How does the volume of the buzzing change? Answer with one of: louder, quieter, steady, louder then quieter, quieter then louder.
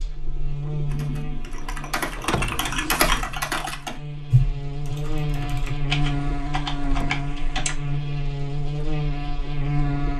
quieter then louder.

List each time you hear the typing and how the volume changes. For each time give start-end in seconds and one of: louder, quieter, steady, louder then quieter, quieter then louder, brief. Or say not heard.
0.8-7.8 louder then quieter.